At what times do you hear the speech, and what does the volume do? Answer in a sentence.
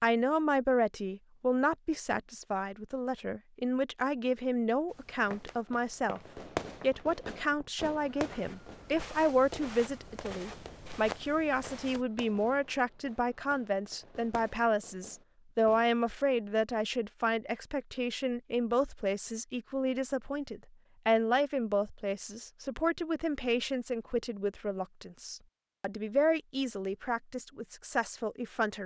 The speech can be heard from 0.0 to 28.8 s, at a steady volume.